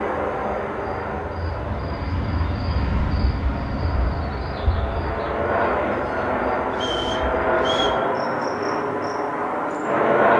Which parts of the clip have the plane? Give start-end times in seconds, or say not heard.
0.0-10.3.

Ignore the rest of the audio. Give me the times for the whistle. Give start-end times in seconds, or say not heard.
6.7-8.0.